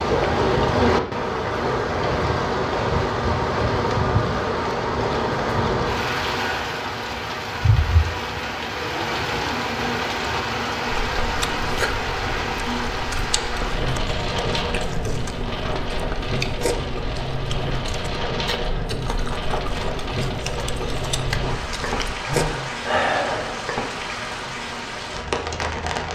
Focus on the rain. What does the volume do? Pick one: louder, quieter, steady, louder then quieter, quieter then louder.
quieter.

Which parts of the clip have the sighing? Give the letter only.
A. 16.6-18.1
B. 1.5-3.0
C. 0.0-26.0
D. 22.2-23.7
D.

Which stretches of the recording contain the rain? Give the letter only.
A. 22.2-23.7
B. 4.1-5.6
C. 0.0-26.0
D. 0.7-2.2
C.